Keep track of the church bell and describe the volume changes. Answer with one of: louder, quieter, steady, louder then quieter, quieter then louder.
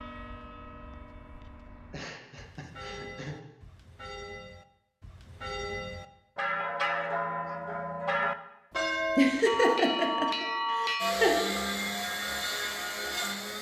louder.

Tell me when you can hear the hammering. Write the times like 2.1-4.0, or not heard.
not heard.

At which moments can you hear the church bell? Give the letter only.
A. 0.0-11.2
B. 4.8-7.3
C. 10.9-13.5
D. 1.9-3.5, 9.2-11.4
A.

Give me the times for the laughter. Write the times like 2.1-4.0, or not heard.
1.9-3.5, 9.2-11.4.